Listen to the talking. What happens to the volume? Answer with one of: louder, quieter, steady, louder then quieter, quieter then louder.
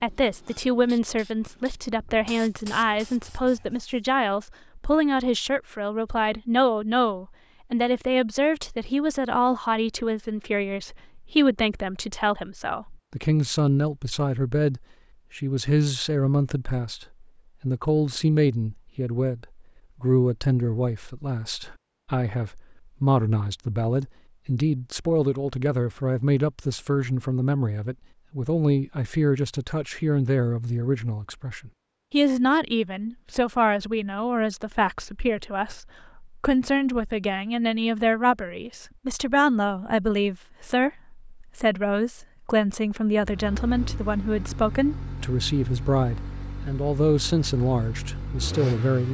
steady.